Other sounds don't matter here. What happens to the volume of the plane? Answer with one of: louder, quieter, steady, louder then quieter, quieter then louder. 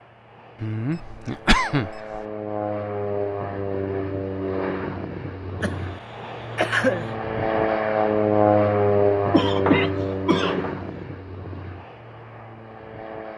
louder then quieter.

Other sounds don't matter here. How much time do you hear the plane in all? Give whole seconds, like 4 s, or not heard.
13 s.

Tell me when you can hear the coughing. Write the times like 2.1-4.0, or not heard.
0.6-2.2, 5.6-7.2, 9.3-10.7.